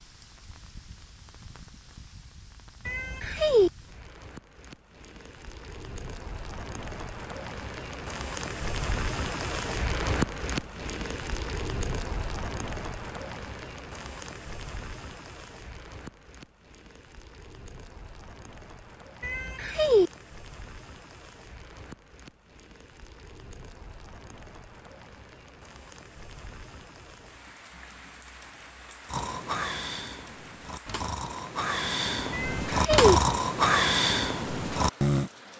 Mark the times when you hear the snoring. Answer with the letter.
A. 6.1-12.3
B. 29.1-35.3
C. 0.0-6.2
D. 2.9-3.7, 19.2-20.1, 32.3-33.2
B.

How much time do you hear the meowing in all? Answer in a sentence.
You can hear the meowing for 3 seconds altogether.